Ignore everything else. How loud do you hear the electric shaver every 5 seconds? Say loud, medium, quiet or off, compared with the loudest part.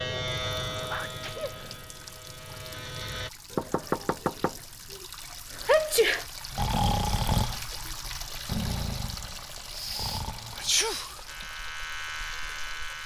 loud, off, loud.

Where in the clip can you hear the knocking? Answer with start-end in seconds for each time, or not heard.
3.5-5.0.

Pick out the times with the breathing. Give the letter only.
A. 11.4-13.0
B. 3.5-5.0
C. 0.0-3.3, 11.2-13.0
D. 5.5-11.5
D.